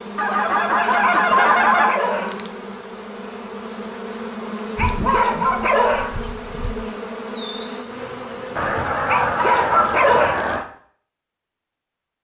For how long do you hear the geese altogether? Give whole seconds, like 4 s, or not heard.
6 s.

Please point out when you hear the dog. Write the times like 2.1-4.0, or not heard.
1.2-2.5, 4.8-6.2, 9.1-10.5.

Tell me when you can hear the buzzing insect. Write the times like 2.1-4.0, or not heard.
0.0-10.0.